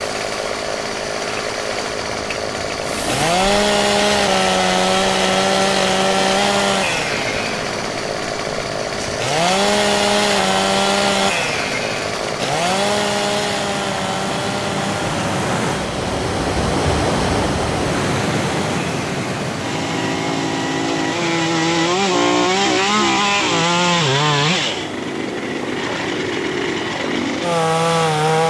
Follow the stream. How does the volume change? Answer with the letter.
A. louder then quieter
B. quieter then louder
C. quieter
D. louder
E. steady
A.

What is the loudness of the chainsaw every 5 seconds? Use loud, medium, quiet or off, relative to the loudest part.
loud, loud, loud, medium, loud, loud.